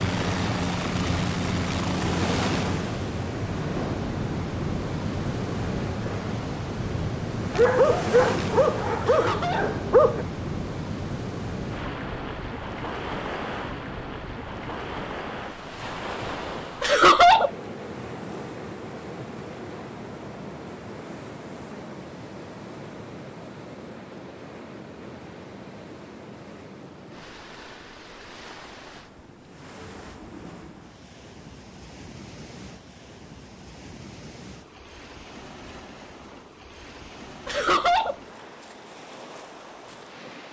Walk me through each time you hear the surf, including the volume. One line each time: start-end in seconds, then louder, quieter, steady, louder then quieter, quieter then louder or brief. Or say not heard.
0.0-40.4 quieter.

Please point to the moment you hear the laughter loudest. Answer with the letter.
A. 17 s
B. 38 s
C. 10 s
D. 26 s
A.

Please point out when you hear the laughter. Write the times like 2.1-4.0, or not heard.
9.0-9.8, 16.8-17.5, 37.5-38.1.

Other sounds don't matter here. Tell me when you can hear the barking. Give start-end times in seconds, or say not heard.
7.5-10.2.